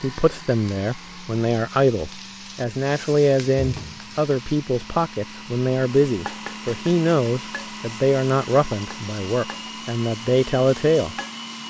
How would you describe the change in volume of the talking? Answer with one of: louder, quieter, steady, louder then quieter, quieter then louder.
steady.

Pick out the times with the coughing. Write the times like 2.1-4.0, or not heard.
not heard.